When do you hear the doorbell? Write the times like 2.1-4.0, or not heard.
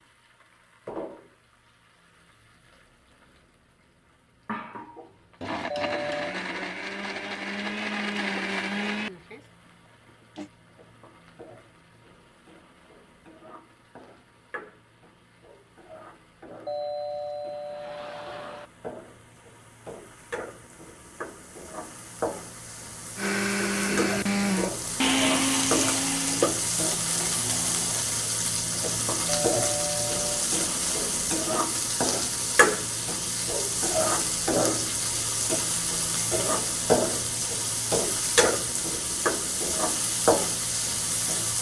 5.7-6.4, 16.6-18.7, 29.2-30.5.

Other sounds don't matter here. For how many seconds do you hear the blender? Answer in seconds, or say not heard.
10 s.